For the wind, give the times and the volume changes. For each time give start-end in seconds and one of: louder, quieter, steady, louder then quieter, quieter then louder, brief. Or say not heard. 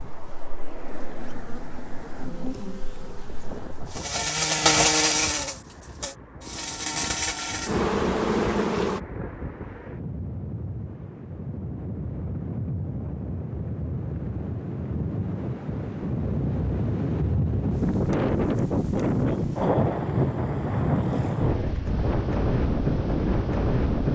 0.0-24.1 louder.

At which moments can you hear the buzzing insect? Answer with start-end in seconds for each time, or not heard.
0.0-9.0.